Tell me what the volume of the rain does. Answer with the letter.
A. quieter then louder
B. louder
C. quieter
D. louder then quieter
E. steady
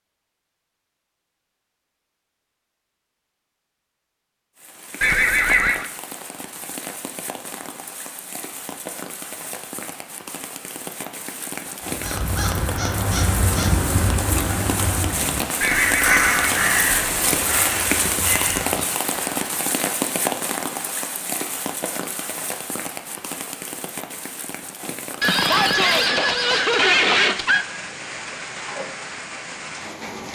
D.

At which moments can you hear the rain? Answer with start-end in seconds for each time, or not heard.
4.5-30.3.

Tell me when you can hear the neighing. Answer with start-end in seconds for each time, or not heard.
5.0-5.9, 15.6-17.2, 25.2-27.6.